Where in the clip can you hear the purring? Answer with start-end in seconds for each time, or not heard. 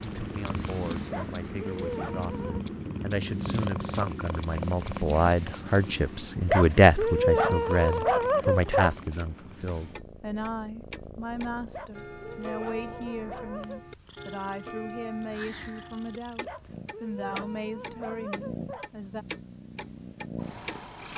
0.0-21.1.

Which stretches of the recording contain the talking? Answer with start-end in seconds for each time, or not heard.
0.0-19.2.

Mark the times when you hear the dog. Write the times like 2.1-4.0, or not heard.
1.1-2.6, 6.5-8.9, 11.7-13.8, 16.4-18.9.